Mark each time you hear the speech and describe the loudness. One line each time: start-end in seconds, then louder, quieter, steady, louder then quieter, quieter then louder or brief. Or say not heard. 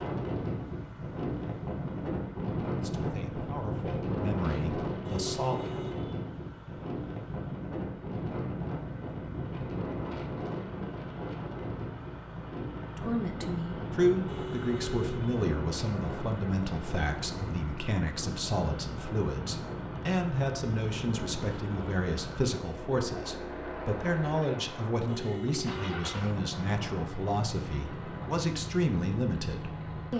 2.8-5.6 brief
12.9-30.1 steady.